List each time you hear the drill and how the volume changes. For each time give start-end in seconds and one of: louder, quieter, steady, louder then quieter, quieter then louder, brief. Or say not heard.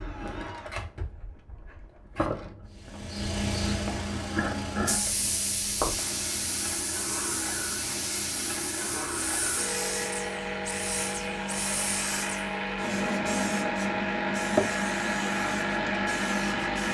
0.0-16.8 louder.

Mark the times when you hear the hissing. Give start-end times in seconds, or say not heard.
2.8-16.8.